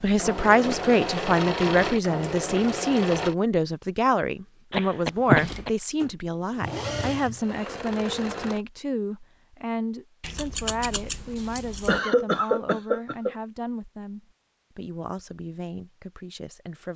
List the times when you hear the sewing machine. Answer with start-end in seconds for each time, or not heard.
0.0-3.4, 5.3-8.6.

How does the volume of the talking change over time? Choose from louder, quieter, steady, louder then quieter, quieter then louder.
quieter.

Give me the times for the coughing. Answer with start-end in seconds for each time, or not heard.
4.7-5.7, 11.8-13.3.